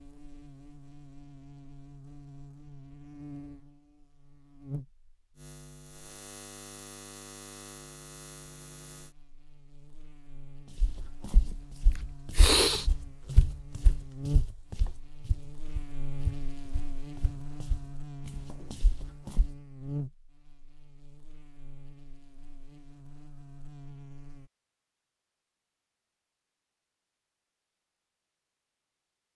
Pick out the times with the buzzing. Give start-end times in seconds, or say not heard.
0.0-24.5.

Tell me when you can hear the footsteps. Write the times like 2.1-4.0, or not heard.
10.8-19.5.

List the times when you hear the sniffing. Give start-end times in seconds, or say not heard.
11.9-12.8.